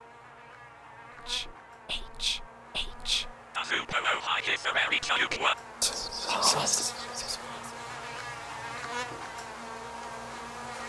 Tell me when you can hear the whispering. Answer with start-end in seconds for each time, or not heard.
1.2-7.7.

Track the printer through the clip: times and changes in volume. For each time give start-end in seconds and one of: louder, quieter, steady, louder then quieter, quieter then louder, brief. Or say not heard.
not heard.